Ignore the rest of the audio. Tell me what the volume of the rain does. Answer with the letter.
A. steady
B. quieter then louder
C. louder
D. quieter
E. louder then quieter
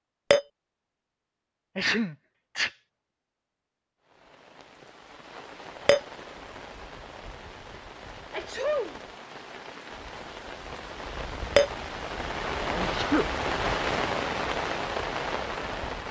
C.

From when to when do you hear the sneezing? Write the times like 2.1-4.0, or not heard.
1.8-2.7, 8.3-9.0, 12.6-13.2.